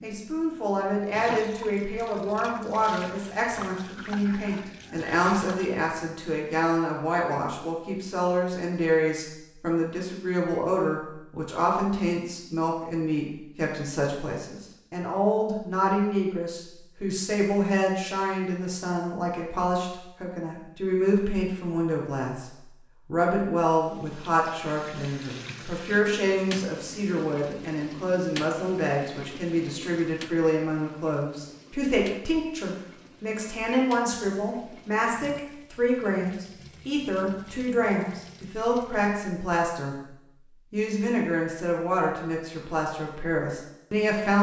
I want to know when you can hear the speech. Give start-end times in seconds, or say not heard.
0.0-40.0, 40.7-44.3.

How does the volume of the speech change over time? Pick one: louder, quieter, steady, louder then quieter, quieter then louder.
steady.